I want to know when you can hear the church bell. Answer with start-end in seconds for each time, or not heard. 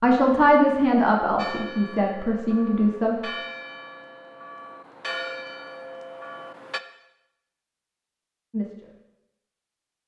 1.4-6.8.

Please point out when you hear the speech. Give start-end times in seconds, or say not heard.
0.0-3.1, 8.5-8.9.